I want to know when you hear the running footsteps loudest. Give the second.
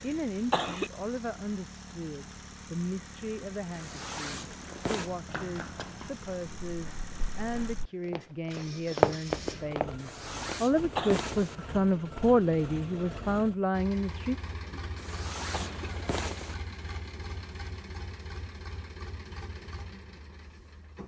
9 s.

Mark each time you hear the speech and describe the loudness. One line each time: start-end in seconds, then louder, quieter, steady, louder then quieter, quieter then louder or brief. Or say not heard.
0.0-14.3 louder.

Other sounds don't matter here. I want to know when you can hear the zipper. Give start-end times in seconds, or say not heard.
3.7-5.1, 9.9-11.6, 14.9-16.6.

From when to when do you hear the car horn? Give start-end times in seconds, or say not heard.
not heard.